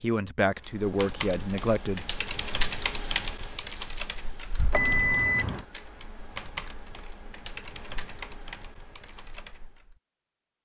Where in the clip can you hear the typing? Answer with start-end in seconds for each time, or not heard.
0.6-9.9.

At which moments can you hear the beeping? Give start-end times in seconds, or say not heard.
4.7-5.7.